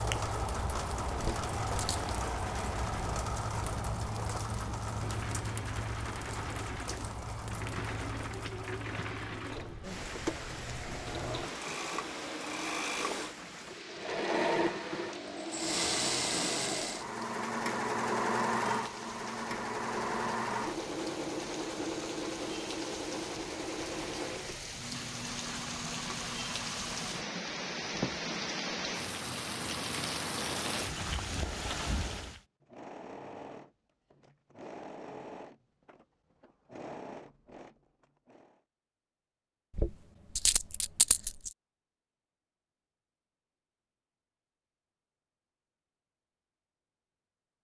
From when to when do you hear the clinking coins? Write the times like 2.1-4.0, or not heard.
1.1-2.0, 39.8-41.5.